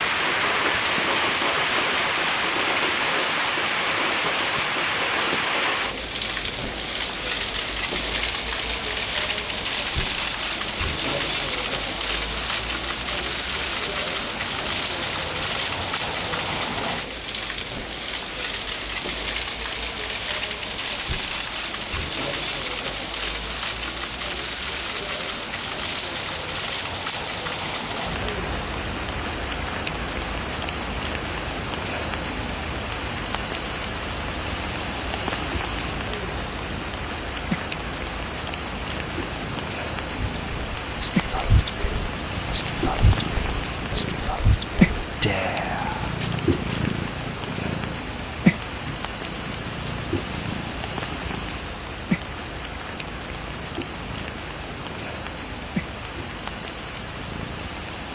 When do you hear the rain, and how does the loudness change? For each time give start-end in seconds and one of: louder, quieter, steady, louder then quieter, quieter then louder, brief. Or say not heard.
0.0-58.1 quieter.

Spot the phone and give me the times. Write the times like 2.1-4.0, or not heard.
not heard.